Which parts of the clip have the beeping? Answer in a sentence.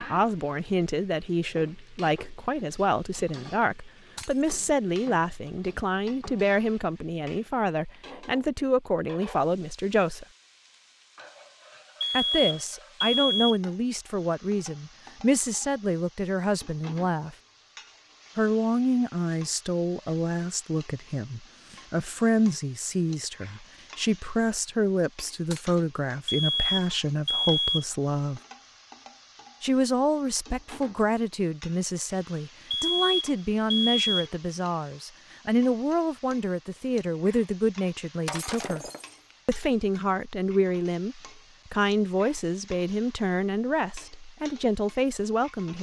You can hear the beeping from 12.0 to 13.6 s, from 26.2 to 27.9 s and from 32.7 to 34.3 s.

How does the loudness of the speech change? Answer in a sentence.
The volume of the speech stays about the same.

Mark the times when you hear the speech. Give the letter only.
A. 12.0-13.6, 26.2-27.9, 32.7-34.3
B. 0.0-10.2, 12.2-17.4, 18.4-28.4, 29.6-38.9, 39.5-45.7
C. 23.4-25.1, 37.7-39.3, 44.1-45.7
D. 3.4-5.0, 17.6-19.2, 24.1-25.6
B.